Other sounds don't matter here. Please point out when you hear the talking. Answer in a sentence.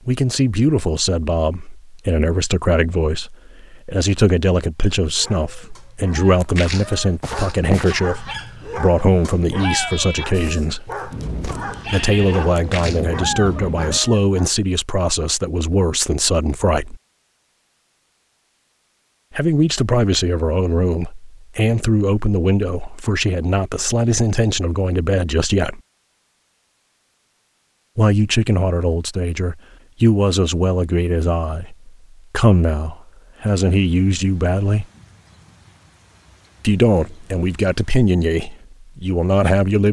The talking can be heard from 0.1 to 10.9 s, from 11.8 to 16.9 s, from 19.4 to 25.8 s, from 27.9 to 34.9 s and from 36.6 to 39.8 s.